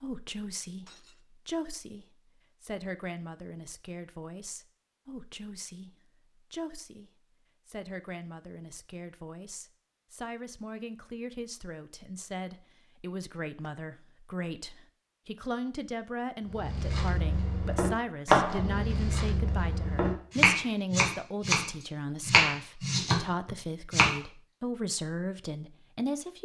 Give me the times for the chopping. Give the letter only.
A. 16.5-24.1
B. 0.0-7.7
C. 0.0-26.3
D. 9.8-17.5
A.